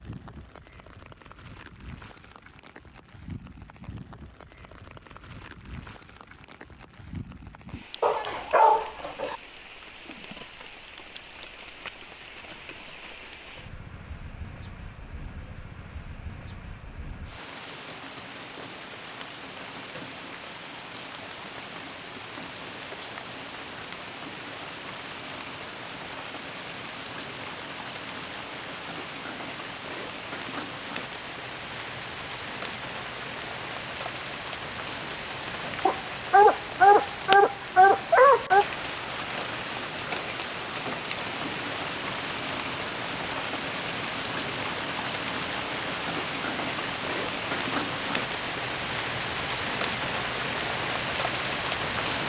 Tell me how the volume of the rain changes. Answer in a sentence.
The loudness of the rain goes up.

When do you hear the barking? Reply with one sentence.
You can hear the barking from 8.0 to 9.3 s and from 35.9 to 38.6 s.